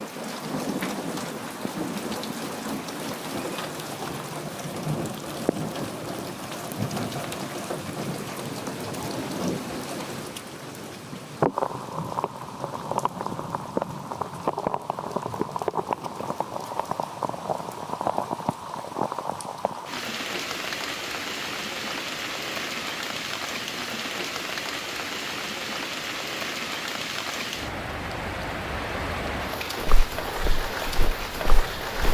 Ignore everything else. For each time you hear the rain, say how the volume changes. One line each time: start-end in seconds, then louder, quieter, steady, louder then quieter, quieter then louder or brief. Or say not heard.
0.0-32.0 steady.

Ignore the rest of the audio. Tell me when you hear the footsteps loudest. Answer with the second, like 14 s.
30 s.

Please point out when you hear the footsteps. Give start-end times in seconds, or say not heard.
29.9-32.0.